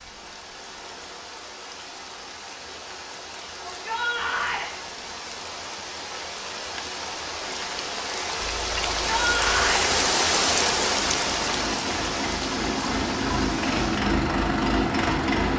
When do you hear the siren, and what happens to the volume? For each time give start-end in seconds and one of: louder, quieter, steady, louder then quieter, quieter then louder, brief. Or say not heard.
not heard.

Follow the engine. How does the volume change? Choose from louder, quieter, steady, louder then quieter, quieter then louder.
louder.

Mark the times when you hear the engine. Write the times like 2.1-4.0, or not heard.
8.3-15.5.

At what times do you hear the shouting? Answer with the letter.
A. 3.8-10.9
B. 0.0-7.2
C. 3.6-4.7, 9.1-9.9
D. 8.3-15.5
C.